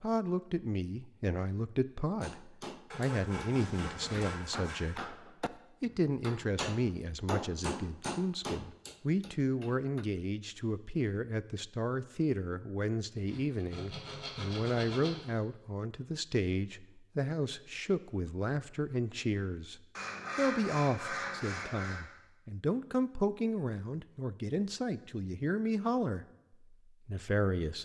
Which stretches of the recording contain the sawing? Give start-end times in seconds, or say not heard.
2.9-5.0, 13.2-15.2, 19.9-22.0.